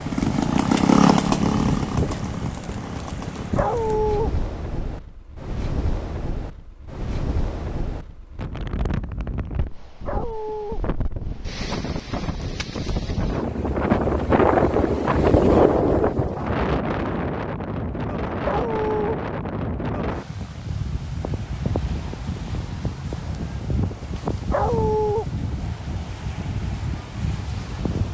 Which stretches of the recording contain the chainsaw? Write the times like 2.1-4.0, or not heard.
0.0-3.5.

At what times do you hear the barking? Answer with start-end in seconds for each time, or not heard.
3.5-4.3, 10.1-10.8, 18.4-19.2, 24.5-25.2.